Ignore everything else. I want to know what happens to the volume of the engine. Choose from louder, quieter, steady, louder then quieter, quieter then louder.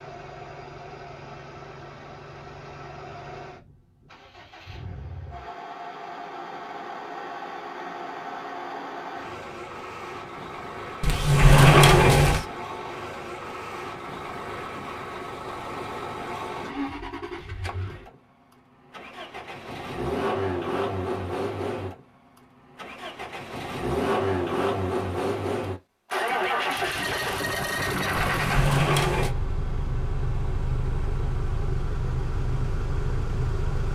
louder.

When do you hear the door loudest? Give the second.
12 s.